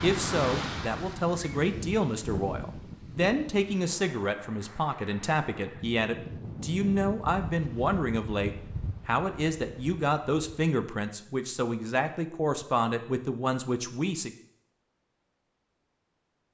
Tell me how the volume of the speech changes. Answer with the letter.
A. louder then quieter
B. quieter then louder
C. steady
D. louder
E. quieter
C.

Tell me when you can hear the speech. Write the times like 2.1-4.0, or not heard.
0.0-14.3.